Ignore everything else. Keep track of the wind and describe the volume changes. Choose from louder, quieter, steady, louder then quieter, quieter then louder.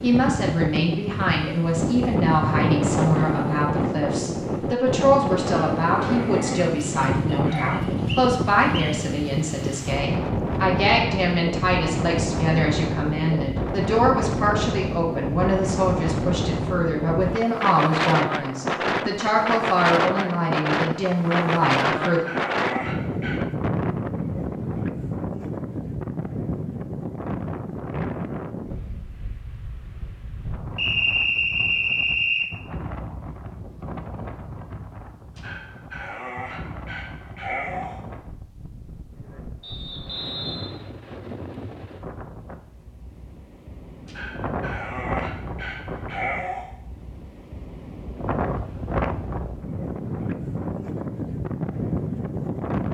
quieter then louder.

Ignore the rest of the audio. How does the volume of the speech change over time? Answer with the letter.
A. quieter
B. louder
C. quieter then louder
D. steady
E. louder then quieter
D.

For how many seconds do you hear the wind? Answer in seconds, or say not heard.
53 s.